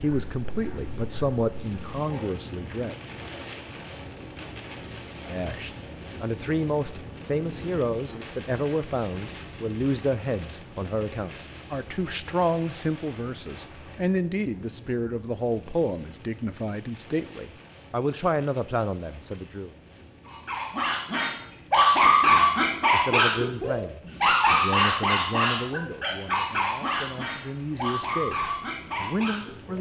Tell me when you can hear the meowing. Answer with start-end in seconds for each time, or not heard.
not heard.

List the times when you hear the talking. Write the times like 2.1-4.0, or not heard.
0.0-3.0, 5.2-19.7, 22.2-29.7.